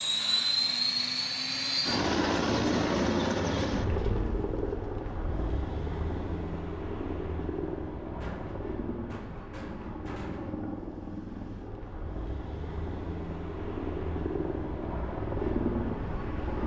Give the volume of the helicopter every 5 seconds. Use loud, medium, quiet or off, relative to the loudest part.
loud, medium, medium, loud.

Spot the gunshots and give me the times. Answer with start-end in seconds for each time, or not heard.
8.2-10.7.